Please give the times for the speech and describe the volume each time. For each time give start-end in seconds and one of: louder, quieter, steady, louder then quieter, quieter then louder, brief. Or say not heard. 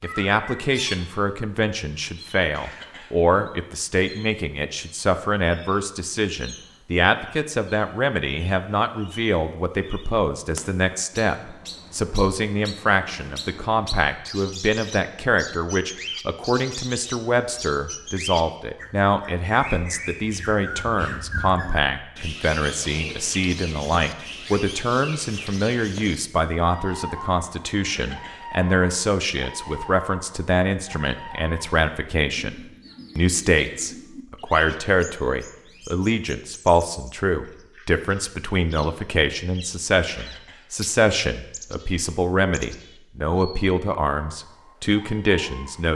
0.0-45.9 steady.